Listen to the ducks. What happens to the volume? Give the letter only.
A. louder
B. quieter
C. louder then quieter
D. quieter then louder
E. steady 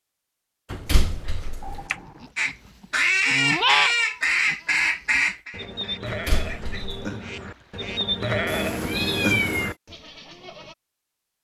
B.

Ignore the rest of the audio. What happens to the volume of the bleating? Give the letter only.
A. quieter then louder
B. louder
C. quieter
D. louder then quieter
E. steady
A.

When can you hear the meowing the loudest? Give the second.
9 s.